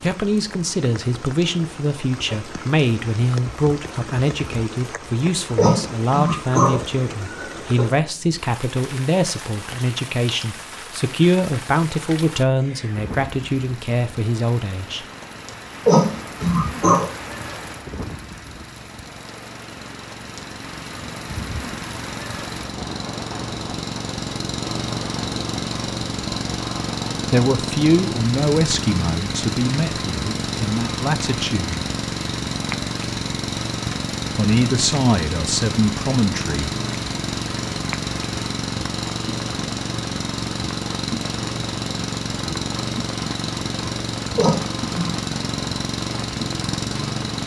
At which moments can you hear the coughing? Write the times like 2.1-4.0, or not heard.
5.5-7.8, 15.8-17.1, 44.4-45.1.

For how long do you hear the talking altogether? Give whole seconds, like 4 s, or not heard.
22 s.